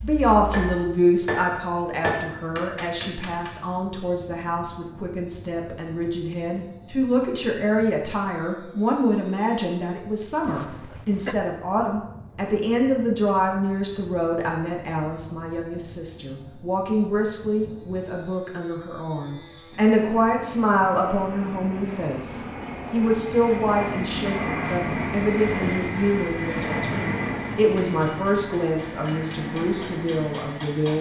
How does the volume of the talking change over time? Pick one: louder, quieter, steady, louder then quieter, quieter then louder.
steady.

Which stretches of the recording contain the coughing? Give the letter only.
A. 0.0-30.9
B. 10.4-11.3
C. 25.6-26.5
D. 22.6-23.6
B.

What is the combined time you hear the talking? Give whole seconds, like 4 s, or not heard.
31 s.